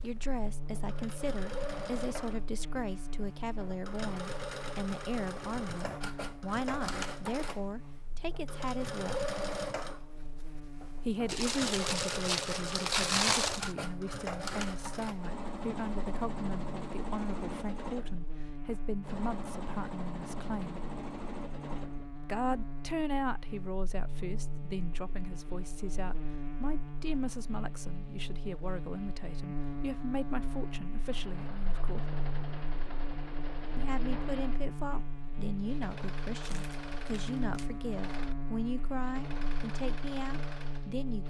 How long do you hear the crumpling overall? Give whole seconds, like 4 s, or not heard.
4 s.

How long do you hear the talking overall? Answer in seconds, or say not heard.
36 s.